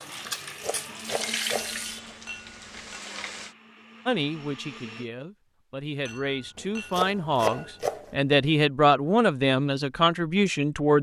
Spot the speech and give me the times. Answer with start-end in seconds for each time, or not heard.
4.0-10.9.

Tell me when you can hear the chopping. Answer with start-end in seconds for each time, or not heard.
0.2-2.1, 6.5-8.3.